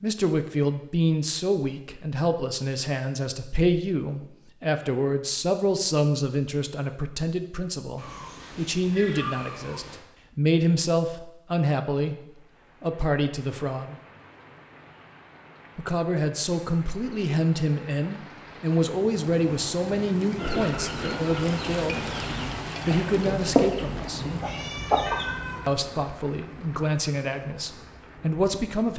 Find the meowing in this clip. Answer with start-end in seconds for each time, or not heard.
8.0-10.0, 24.1-25.6.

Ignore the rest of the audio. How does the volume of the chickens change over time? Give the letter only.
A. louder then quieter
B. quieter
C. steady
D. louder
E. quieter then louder
D.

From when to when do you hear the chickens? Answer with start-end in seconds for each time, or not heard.
20.4-25.6.